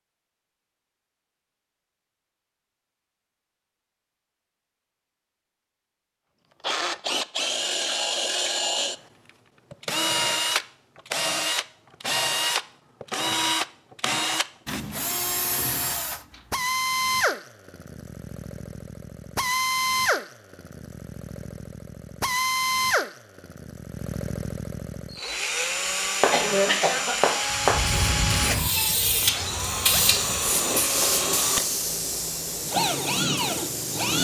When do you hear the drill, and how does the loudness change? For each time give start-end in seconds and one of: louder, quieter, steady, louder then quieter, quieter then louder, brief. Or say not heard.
6.6-34.1 steady.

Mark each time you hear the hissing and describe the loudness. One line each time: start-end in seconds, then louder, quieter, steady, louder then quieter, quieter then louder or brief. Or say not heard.
27.4-34.1 quieter.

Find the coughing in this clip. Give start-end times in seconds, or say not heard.
26.2-27.7.